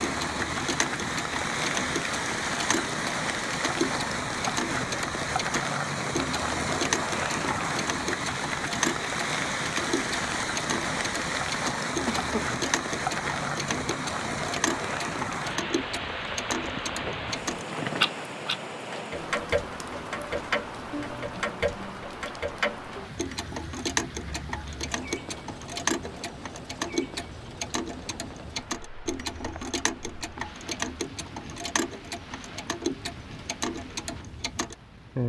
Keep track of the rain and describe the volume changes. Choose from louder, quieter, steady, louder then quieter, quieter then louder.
quieter.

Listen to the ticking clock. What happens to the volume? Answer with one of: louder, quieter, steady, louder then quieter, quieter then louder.
steady.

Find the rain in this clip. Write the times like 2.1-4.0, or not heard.
0.0-35.2.